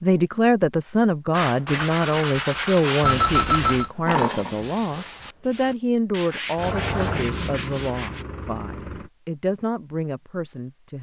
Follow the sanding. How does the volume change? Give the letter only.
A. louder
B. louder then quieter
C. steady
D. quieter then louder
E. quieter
E.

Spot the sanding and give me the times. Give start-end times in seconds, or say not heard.
1.3-8.2.